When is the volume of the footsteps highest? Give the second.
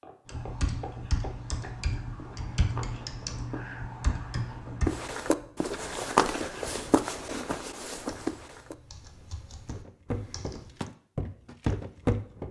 6 s.